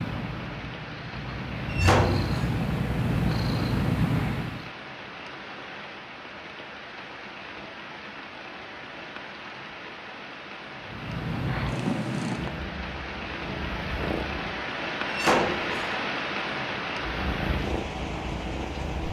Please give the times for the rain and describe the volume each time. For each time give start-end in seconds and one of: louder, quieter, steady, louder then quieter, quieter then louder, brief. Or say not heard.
0.0-19.0 louder.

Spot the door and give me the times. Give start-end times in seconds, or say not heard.
1.7-2.5, 15.1-15.9.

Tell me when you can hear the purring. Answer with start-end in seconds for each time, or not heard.
0.0-4.7, 10.8-14.7, 16.9-19.0.